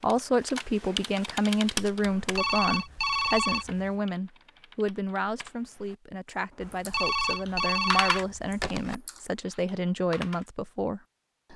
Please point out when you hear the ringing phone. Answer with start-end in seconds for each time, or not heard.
2.1-3.9, 6.6-8.9.